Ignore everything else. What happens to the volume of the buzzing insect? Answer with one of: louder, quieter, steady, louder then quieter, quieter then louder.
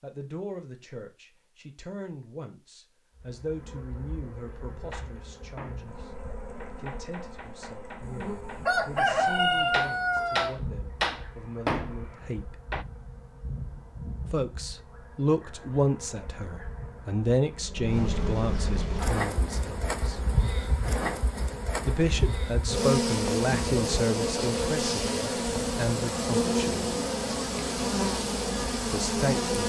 louder.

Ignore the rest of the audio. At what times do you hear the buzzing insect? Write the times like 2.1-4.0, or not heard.
3.1-29.6.